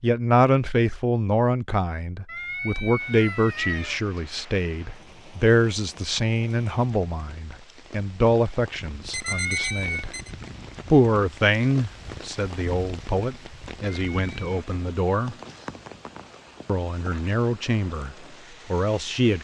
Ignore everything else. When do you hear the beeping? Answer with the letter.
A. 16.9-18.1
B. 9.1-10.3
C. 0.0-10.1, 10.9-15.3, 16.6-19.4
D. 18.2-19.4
B.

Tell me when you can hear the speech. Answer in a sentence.
The speech can be heard from 0.0 to 10.1 s, from 10.9 to 15.3 s and from 16.6 to 19.4 s.